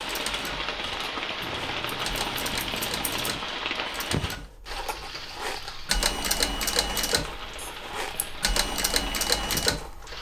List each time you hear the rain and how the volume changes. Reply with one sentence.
You can hear the rain from 0.0 to 10.1 s, getting quieter.